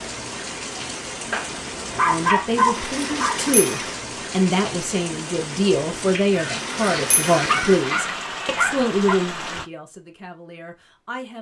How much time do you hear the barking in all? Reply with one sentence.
You can hear the barking for 4 seconds altogether.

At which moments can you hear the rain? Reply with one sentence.
The rain can be heard from 0.0 to 9.7 s.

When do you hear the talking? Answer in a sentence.
The talking can be heard from 2.0 to 11.3 s.